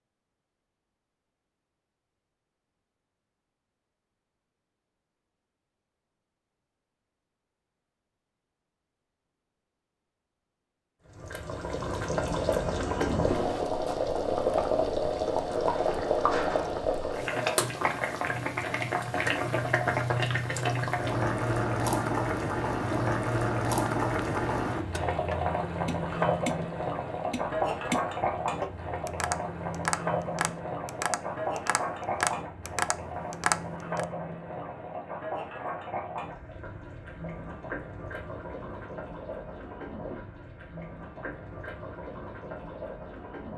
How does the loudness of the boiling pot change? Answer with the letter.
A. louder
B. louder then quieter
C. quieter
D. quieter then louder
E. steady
C.